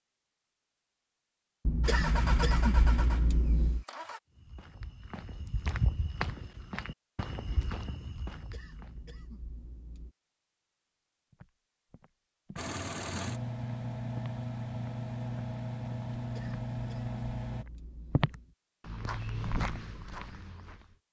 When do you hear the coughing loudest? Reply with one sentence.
The volume of the coughing peaks at 3 seconds.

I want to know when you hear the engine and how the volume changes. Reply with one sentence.
The engine can be heard briefly from 1.8 to 4.2 s; and from 12.6 to 17.6 s, at a steady volume.